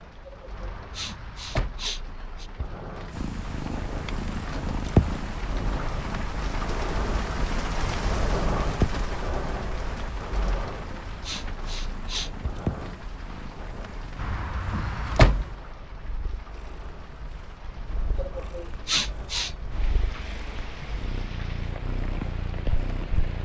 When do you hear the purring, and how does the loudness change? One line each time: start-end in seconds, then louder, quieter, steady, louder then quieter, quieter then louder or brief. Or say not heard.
3.1-23.4 quieter then louder.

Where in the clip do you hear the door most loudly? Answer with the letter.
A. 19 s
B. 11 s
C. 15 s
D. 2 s
C.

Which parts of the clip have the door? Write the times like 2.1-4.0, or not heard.
0.6-1.9, 14.2-15.5.